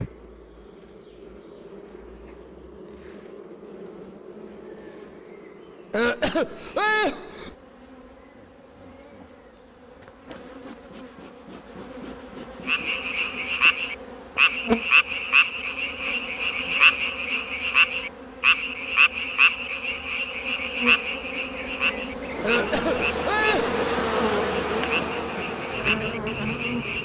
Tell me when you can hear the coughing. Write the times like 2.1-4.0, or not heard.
5.9-7.5, 22.4-23.8.